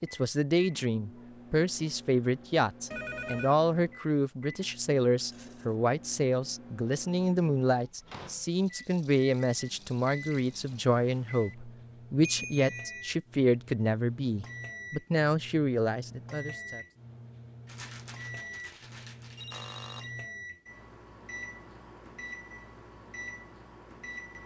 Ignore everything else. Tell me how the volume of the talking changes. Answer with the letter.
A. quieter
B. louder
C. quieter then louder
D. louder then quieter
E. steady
E.